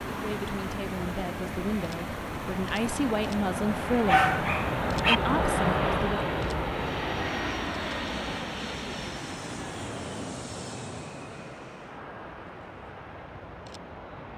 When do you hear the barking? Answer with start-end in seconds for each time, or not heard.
4.0-5.2.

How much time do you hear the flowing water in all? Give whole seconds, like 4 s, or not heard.
14 s.